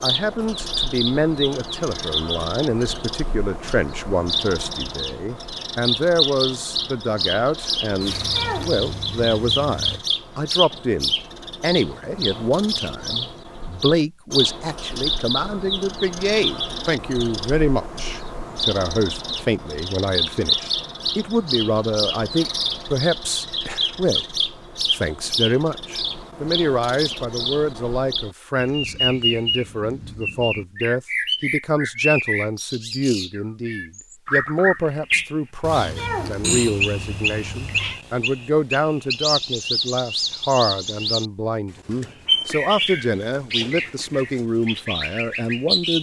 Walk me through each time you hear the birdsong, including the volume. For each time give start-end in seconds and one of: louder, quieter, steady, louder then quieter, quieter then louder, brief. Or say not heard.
0.0-45.9 steady.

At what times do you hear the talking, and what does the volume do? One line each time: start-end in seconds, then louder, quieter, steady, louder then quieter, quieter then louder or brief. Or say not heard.
0.0-45.9 steady.